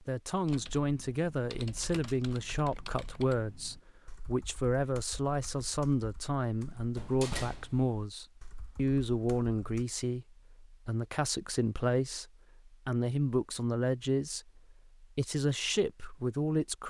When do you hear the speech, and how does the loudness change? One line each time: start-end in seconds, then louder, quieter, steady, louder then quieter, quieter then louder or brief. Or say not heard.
0.0-16.8 steady.